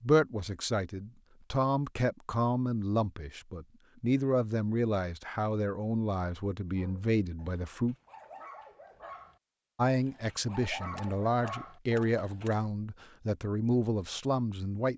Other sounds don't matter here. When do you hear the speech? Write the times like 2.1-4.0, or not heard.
0.0-8.0, 9.8-14.9.